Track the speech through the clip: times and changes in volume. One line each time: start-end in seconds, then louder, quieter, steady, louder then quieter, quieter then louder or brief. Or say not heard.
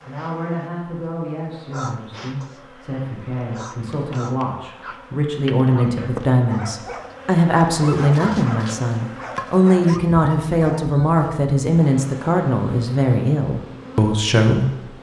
0.1-14.9 louder.